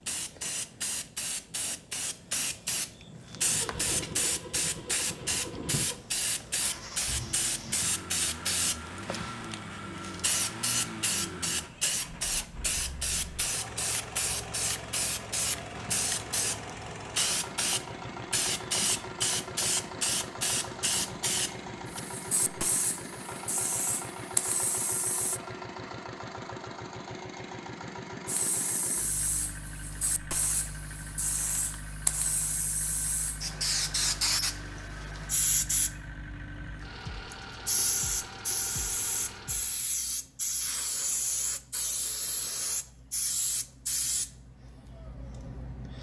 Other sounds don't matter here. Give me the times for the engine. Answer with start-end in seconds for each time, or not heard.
3.0-39.9.